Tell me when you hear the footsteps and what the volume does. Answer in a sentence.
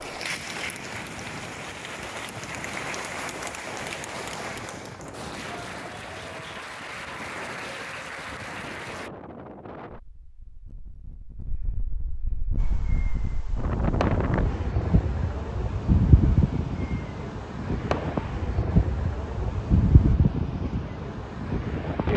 The footsteps can't be heard in this clip.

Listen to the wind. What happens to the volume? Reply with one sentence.
The loudness of the wind goes up.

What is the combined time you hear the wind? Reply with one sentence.
You can hear the wind for 22 seconds altogether.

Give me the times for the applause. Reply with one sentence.
The applause can be heard from 0.0 to 9.1 s.